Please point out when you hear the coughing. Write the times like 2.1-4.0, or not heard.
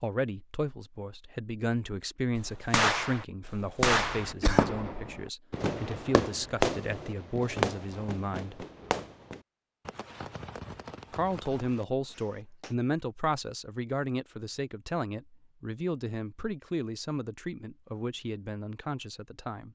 3.9-4.7.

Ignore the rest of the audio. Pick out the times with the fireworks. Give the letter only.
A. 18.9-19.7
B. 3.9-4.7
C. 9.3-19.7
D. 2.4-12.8
D.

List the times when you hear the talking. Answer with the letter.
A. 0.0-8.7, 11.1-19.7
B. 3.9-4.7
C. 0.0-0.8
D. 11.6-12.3
A.